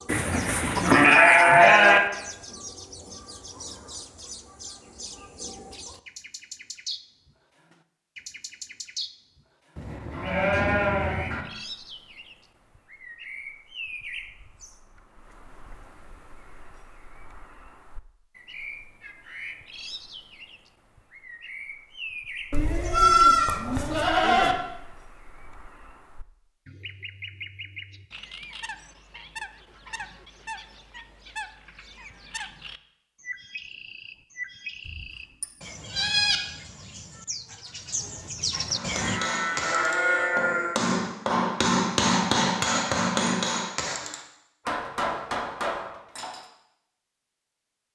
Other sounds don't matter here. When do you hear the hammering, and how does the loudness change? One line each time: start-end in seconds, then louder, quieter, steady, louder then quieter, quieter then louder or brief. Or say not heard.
38.7-46.5 louder then quieter.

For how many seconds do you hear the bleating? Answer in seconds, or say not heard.
9 s.